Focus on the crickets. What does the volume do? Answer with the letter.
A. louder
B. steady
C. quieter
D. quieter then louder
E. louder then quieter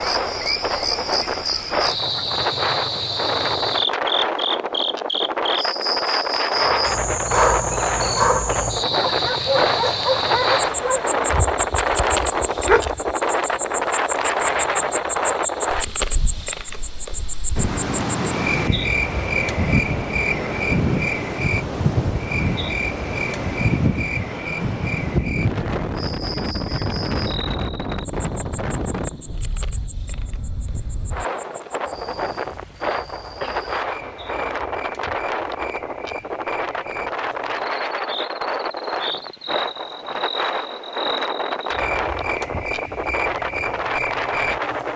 D.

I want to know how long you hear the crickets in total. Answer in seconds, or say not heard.
45 s.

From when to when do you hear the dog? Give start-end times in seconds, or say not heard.
6.5-13.2.